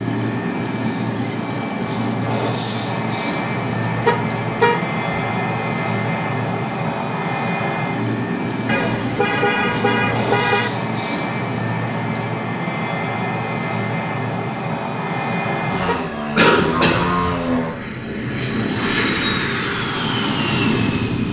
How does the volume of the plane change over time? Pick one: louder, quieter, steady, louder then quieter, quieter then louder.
steady.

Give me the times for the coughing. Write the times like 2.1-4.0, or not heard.
16.4-17.1.